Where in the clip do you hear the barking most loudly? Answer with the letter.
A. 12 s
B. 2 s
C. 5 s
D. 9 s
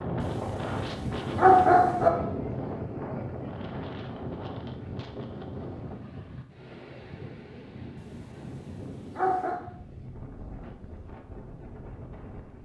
B.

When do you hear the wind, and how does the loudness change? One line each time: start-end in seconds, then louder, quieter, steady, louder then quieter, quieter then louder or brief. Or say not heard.
0.0-12.5 quieter.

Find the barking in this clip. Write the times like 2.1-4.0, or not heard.
0.2-2.1, 8.0-9.6.